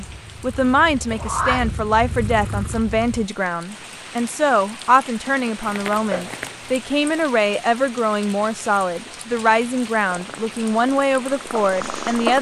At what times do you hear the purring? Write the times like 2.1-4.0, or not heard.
0.0-3.3, 10.0-12.3.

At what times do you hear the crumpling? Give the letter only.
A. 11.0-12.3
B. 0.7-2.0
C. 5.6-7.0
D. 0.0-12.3
C.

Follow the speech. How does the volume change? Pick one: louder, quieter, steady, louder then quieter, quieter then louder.
steady.